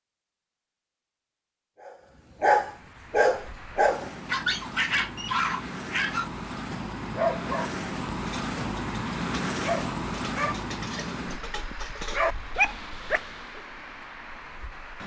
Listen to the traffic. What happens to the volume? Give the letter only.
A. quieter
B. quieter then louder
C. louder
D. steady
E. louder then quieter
E.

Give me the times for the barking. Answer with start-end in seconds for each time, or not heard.
1.8-13.6.